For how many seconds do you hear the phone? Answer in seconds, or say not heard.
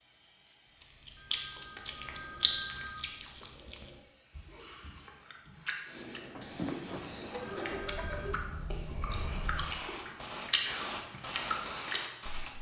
4 s.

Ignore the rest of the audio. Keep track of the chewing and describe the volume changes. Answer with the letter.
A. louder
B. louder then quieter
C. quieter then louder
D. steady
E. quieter
C.